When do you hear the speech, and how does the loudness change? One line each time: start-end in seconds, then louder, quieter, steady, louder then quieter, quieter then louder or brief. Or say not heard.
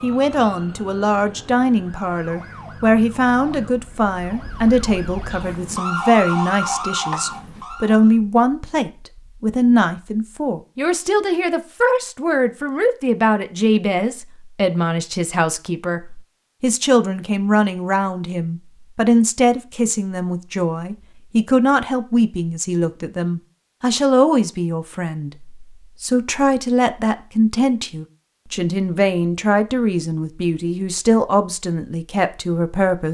0.0-33.0 steady.